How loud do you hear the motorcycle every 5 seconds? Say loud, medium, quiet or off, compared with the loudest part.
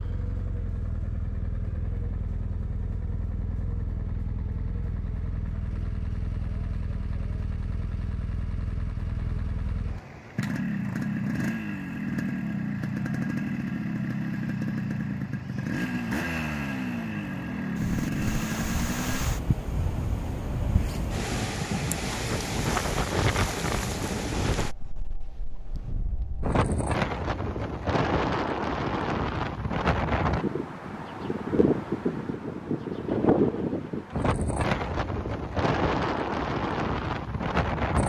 medium, medium, loud, loud, off, off, off, off.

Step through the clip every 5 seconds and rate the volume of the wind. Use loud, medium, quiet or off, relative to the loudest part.
off, off, off, medium, loud, loud, loud, loud.